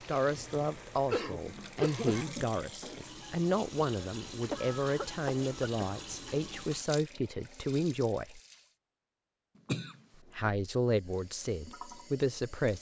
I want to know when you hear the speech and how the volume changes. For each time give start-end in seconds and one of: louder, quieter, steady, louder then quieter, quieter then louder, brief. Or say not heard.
0.1-8.4 steady
10.3-12.7 brief.